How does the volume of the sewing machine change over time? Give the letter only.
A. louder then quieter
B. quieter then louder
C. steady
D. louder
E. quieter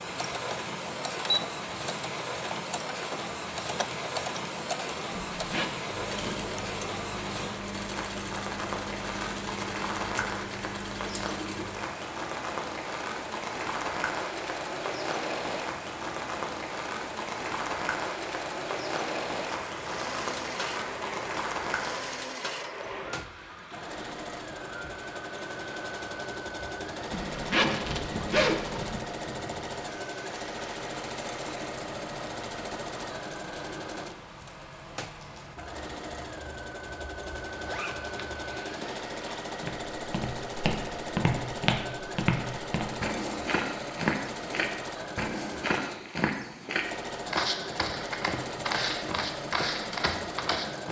C.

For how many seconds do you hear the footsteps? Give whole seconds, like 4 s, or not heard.
11 s.